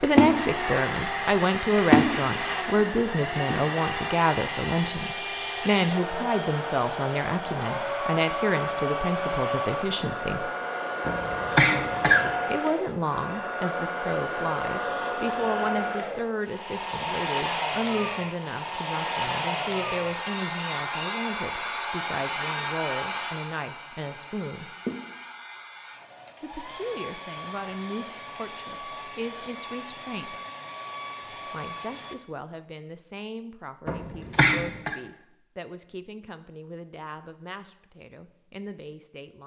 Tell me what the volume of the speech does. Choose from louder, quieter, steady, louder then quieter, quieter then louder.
quieter.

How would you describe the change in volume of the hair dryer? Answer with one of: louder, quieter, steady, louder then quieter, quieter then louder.
quieter.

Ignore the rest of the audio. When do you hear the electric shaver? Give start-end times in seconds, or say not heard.
not heard.